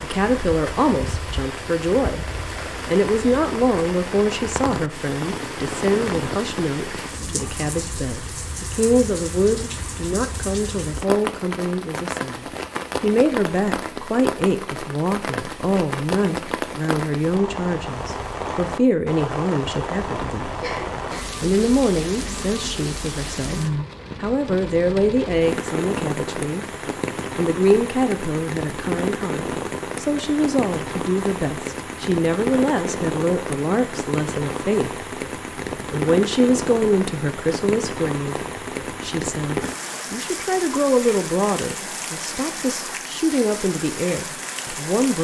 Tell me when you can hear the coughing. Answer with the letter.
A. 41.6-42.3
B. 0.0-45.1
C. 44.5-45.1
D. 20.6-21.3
D.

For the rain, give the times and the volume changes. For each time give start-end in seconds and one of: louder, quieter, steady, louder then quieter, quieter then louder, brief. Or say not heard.
0.0-45.1 steady.